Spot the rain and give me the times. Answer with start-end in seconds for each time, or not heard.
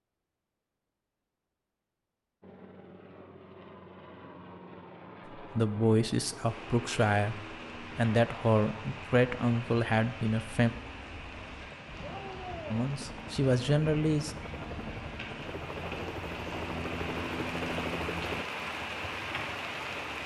6.4-20.2.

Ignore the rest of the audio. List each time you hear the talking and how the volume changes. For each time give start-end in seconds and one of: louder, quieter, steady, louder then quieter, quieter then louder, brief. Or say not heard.
5.3-10.7 steady
12.7-14.3 brief.